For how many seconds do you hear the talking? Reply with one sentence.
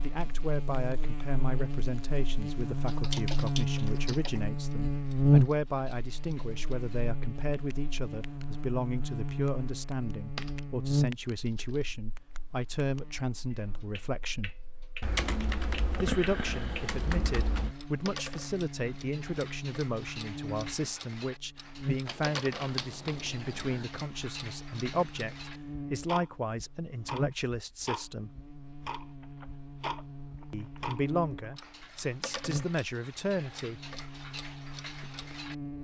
The talking can be heard for 30 seconds in total.